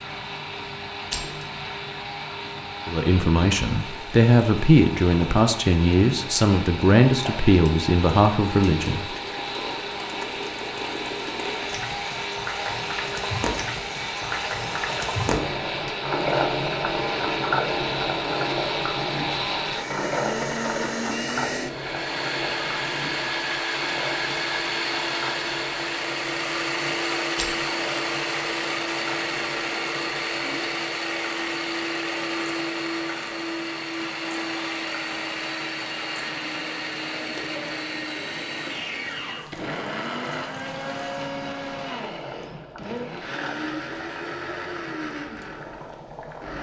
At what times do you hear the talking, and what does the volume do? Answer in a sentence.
You can hear the talking from 2.9 to 9.2 s, at a steady volume.